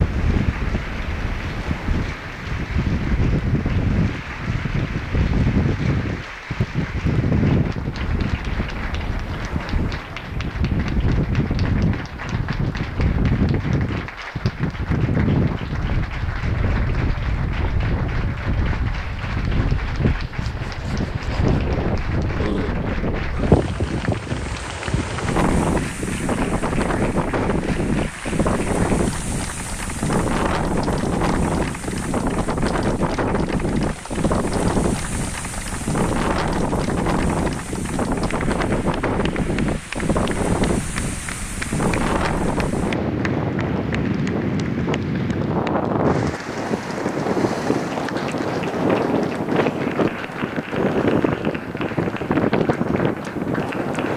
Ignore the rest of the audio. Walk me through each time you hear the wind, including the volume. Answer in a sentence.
You can hear the wind from 0.0 to 54.1 s, at a steady volume.